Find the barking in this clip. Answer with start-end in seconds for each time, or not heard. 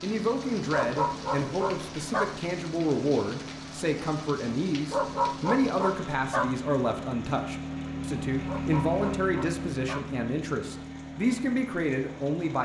0.7-2.4, 4.9-6.5, 8.4-10.1.